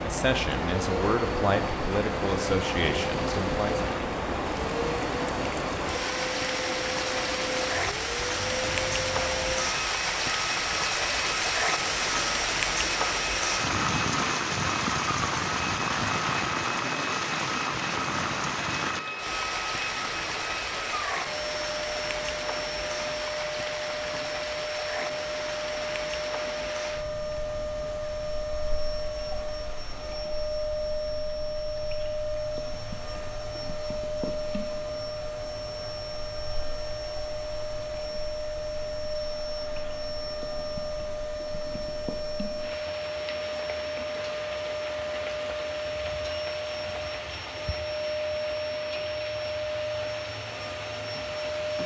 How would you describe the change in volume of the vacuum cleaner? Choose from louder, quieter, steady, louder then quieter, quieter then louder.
steady.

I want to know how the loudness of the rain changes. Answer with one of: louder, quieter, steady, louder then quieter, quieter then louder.
quieter then louder.